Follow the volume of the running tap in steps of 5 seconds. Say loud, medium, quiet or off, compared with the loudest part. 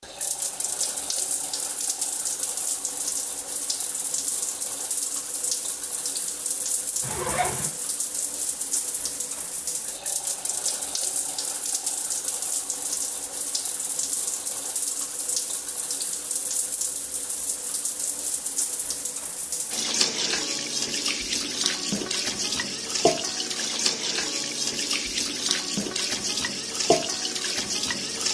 medium, medium, medium, medium, loud, loud.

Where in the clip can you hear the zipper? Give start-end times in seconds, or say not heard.
7.0-7.7.